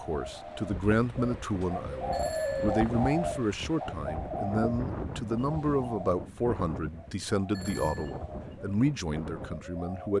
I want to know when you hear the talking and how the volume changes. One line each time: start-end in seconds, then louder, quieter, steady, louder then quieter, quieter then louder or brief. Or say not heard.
0.0-10.1 steady.